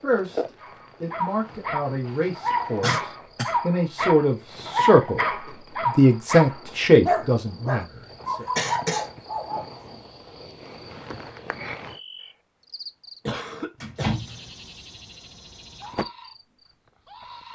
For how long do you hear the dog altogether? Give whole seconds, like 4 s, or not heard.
9 s.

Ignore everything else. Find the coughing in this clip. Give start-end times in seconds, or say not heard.
2.8-3.5, 8.6-9.1, 13.2-14.1.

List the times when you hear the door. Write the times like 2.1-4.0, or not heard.
13.8-14.4.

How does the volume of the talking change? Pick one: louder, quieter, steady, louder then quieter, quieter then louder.
louder.